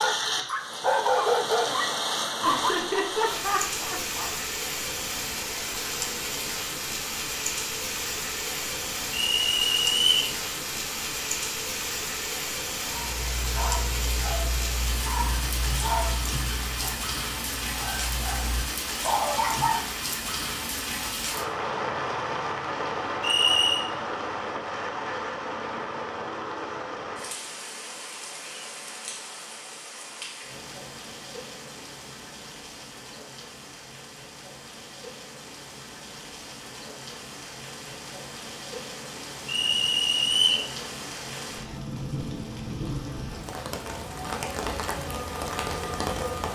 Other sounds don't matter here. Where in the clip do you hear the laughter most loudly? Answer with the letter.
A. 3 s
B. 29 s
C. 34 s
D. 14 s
A.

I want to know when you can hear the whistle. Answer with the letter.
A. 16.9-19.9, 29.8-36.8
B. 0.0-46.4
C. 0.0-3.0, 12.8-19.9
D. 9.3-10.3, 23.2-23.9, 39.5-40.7
D.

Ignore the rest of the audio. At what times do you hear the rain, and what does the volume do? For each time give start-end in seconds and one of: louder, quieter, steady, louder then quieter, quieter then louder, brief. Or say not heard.
0.0-46.4 quieter then louder.